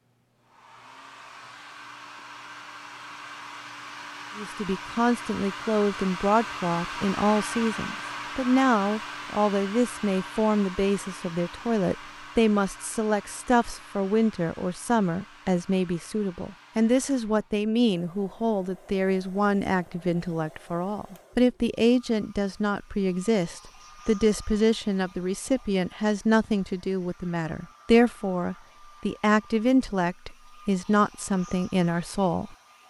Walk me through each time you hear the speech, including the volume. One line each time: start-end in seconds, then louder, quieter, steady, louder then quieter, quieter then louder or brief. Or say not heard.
4.3-32.5 steady.